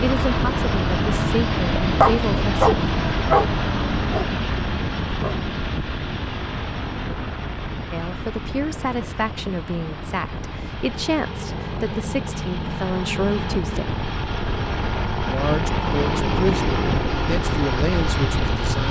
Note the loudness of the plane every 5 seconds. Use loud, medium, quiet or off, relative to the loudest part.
loud, medium, medium, loud.